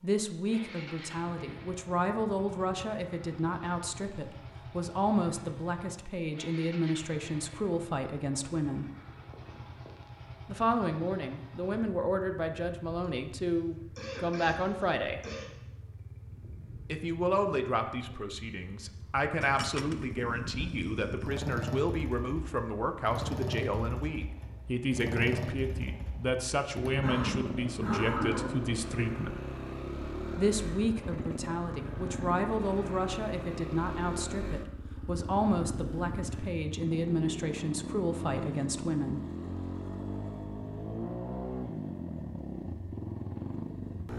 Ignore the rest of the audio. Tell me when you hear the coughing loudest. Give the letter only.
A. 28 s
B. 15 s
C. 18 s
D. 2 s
A.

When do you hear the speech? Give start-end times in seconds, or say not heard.
0.0-8.9, 10.4-15.2, 16.9-29.4, 30.4-39.2.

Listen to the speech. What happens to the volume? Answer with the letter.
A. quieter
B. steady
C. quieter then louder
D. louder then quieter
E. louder
B.